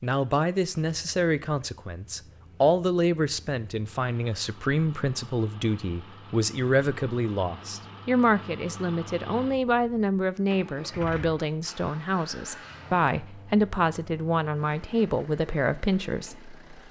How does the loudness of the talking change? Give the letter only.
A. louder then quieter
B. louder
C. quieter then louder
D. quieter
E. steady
E.